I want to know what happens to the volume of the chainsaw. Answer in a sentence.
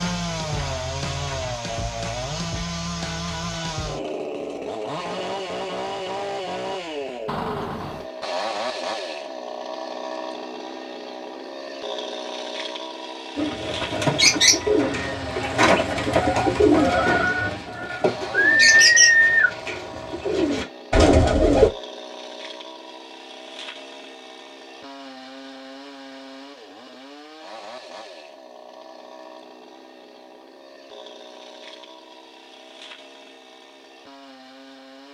The volume of the chainsaw goes down.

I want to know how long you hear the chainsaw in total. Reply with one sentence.
The chainsaw can be heard for 35 seconds in total.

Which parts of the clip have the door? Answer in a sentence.
You can hear the door from 7.2 to 8.1 s.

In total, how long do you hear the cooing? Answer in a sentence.
The cooing can be heard for 8 seconds in total.